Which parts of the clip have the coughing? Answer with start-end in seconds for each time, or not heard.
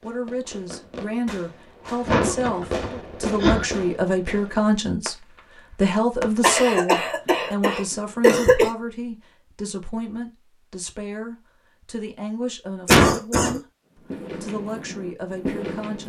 2.0-3.6, 6.4-8.7, 12.8-13.6.